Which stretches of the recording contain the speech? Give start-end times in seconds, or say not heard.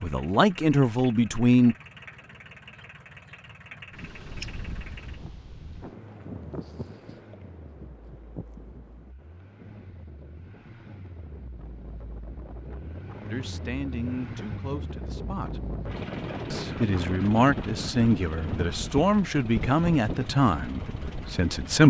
0.0-1.8, 13.3-15.7, 16.5-21.8.